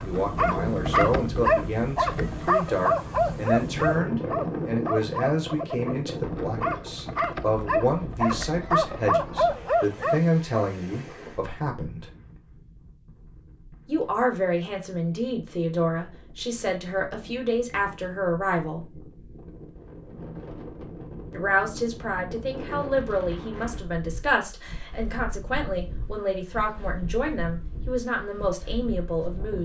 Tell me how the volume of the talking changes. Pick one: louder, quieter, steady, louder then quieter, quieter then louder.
steady.